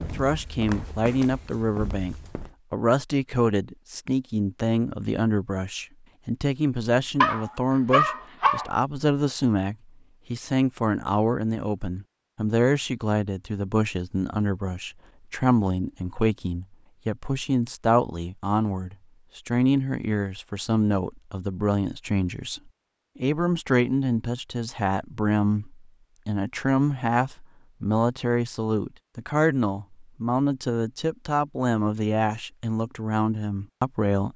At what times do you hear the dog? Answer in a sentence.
You can hear the dog from 7.2 to 8.7 s.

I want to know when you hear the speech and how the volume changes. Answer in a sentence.
You can hear the speech from 0.0 to 34.3 s, at a steady volume.